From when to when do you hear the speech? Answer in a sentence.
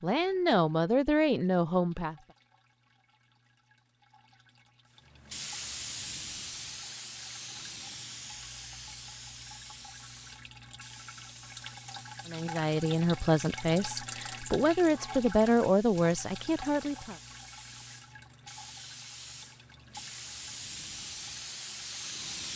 The speech can be heard from 0.0 to 2.1 s and from 12.2 to 17.1 s.